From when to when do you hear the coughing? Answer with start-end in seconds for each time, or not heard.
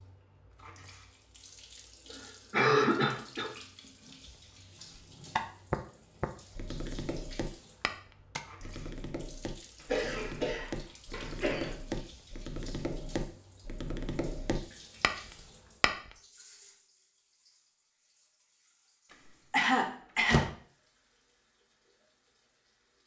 2.1-3.5, 9.8-11.8, 19.5-20.4.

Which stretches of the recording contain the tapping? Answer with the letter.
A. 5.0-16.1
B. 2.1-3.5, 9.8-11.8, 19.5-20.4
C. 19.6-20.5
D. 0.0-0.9
A.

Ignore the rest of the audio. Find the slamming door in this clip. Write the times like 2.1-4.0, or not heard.
19.6-20.5.